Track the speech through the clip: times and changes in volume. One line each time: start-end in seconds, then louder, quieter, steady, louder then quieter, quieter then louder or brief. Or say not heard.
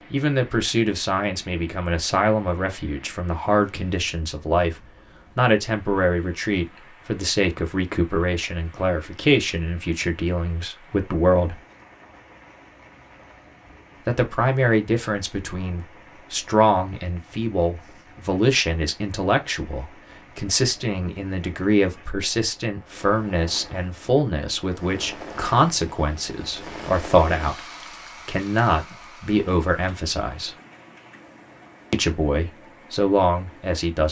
0.1-11.6 steady
14.1-30.6 steady
31.9-34.0 brief.